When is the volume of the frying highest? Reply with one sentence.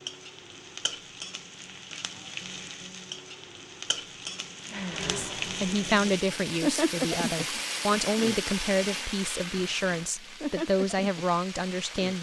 The loudest moment of the frying is at 7 seconds.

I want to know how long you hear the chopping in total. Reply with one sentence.
You can't hear the chopping here.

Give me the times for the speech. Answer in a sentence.
The speech can be heard from 5.0 to 12.1 s.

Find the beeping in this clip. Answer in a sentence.
You can't hear the beeping here.